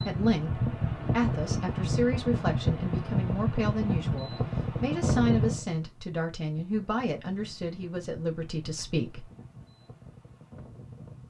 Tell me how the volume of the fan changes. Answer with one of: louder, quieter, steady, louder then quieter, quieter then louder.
quieter.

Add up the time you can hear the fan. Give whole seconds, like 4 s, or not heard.
11 s.